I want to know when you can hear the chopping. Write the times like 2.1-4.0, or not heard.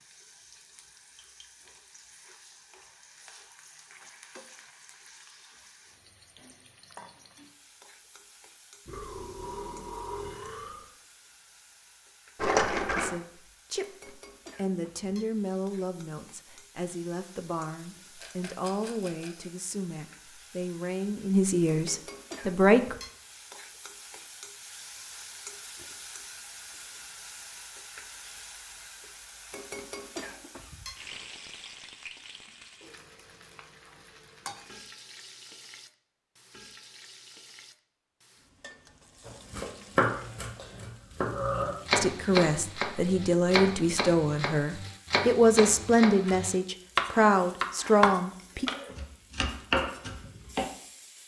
39.2-50.6.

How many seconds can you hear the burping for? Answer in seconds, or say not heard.
4 s.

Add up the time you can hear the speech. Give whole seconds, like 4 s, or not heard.
17 s.